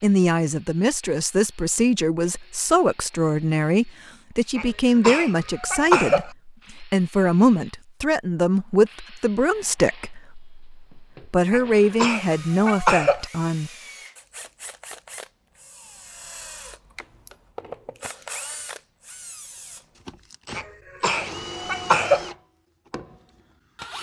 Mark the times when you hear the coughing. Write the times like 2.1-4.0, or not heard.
4.5-6.3, 11.5-13.2, 20.6-22.2.